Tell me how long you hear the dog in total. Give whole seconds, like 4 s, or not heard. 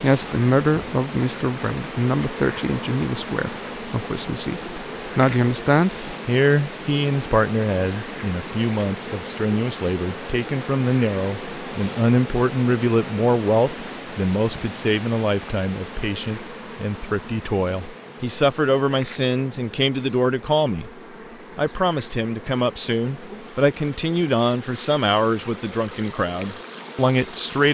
not heard.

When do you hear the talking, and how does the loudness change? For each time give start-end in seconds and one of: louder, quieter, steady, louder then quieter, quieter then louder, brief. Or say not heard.
0.0-20.9 steady
21.6-27.6 steady.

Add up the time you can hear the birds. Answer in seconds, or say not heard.
not heard.